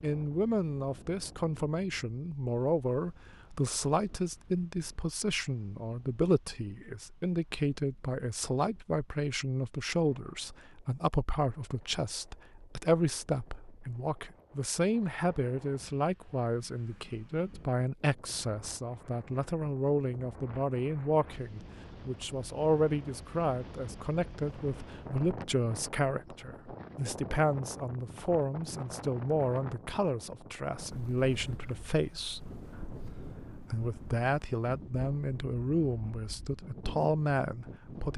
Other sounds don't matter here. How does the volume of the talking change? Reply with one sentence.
The volume of the talking stays about the same.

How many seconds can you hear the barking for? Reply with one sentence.
The barking can't be heard in this clip.